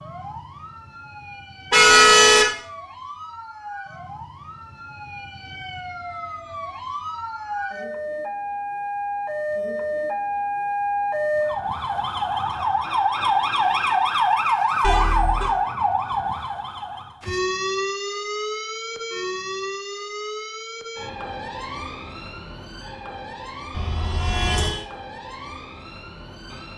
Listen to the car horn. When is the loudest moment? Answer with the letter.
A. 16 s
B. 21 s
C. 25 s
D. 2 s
D.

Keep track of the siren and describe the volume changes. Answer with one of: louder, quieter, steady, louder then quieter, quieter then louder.
louder then quieter.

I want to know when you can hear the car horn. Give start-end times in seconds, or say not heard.
1.7-2.5, 14.8-15.5, 23.8-24.8.